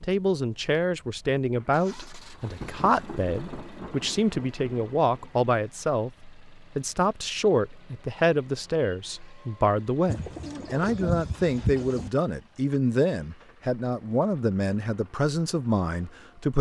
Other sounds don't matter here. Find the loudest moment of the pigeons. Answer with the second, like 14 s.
12 s.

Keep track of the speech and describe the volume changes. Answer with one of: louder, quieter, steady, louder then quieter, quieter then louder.
steady.